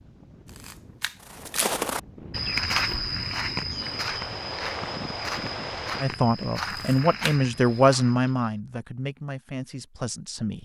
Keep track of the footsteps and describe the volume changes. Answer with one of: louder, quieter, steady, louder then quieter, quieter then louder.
quieter.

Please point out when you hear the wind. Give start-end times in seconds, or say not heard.
0.0-6.0.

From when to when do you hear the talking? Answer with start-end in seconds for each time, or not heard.
6.0-10.6.